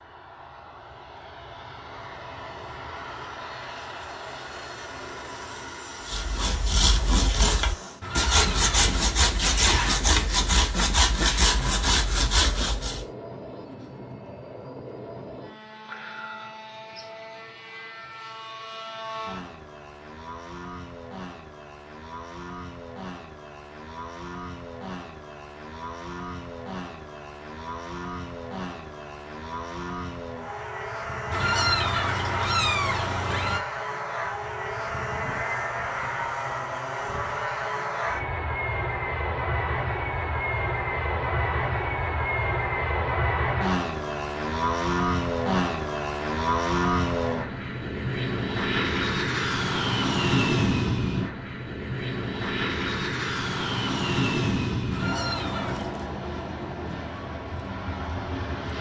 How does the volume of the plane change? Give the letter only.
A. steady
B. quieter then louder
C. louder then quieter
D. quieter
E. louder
E.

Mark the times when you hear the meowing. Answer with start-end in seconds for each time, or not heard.
8.0-8.9, 31.3-33.6, 54.9-56.0.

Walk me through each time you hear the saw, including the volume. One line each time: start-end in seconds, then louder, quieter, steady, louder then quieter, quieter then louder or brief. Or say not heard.
6.0-13.1 steady.